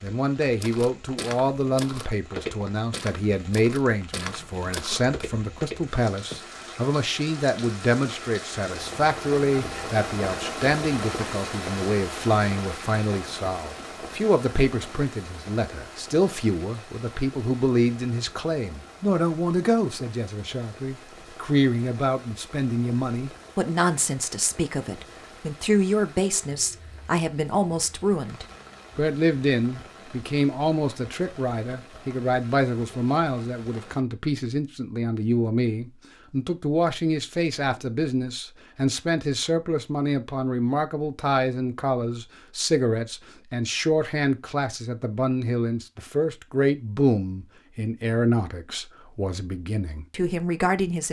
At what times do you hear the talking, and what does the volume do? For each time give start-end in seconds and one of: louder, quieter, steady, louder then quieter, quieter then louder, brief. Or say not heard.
0.0-51.0 steady.